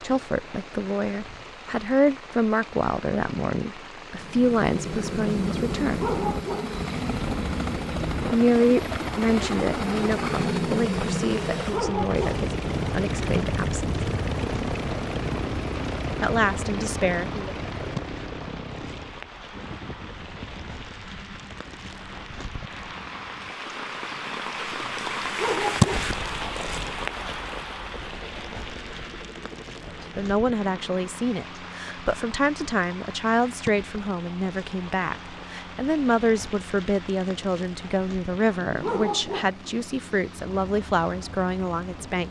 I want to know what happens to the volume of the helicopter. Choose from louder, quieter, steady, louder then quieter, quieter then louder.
quieter.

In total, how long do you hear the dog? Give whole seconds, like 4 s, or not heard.
3 s.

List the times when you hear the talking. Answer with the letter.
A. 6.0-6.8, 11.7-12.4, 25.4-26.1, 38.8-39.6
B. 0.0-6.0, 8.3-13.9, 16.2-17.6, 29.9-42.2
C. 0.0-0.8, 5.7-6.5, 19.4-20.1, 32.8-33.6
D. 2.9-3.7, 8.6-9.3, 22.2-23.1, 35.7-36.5
B.